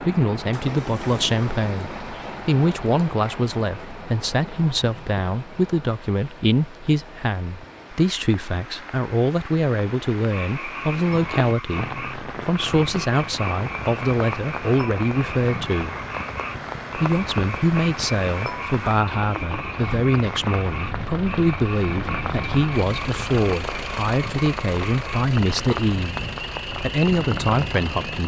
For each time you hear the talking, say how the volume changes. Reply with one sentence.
The talking can be heard from 0.0 to 15.9 s, at a steady volume; and from 16.9 to 28.2 s, at a steady volume.